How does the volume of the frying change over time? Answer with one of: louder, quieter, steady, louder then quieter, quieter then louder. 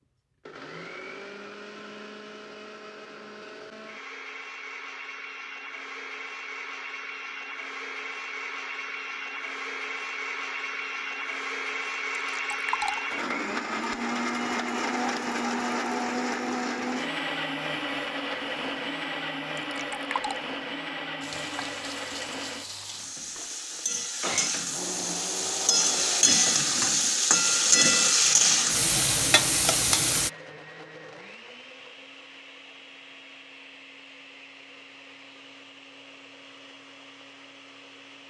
louder.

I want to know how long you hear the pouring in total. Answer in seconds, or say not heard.
2 s.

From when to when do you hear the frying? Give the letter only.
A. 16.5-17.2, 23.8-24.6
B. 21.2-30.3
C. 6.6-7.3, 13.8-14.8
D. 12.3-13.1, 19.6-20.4
B.